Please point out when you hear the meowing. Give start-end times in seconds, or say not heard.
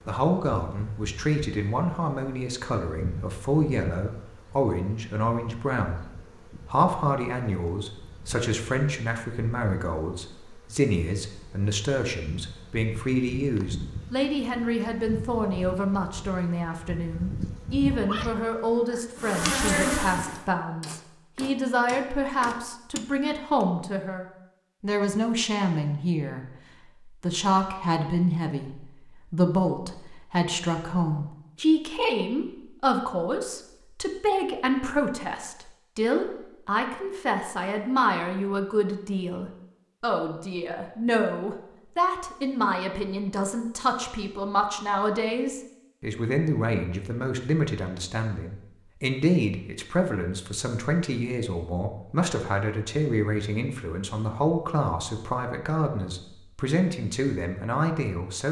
17.9-19.1.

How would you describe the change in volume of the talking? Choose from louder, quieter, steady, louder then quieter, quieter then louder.
steady.